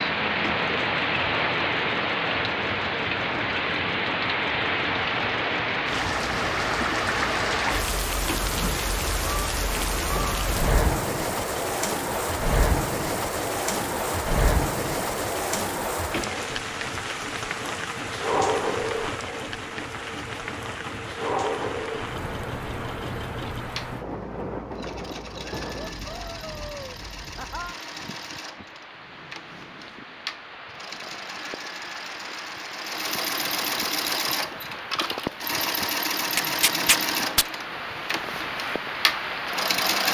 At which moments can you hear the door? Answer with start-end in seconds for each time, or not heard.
not heard.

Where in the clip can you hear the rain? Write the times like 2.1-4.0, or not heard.
0.0-40.0.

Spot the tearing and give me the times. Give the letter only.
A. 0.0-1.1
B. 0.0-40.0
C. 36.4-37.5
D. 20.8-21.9
C.